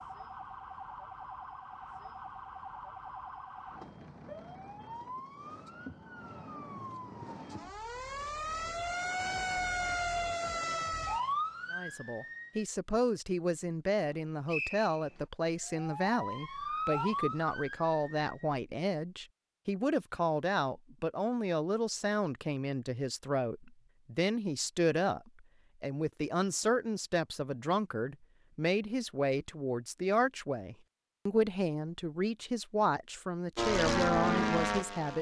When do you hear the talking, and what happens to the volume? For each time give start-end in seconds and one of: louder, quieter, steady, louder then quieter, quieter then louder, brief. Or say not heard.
11.7-35.1 steady.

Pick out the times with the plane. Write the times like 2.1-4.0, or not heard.
33.5-35.1.